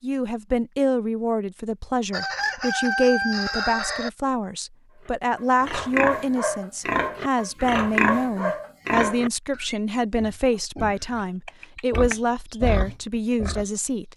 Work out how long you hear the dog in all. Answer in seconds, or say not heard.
not heard.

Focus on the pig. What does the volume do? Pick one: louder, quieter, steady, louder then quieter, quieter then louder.
quieter then louder.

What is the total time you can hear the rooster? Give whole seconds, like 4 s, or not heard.
2 s.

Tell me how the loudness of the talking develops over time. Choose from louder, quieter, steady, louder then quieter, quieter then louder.
steady.